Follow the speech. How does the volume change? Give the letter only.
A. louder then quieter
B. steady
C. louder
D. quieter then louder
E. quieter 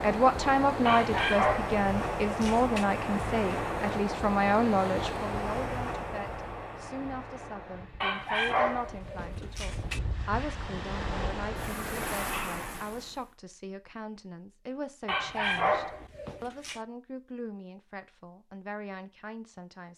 E.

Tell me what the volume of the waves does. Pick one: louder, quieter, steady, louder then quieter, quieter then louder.
quieter then louder.